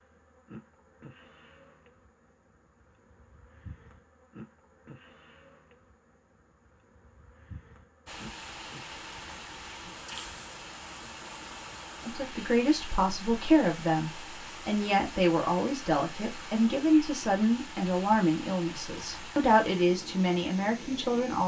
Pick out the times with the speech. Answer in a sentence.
The speech can be heard from 12.1 to 21.4 s.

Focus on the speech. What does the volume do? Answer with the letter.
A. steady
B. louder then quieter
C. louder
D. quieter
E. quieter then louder
A.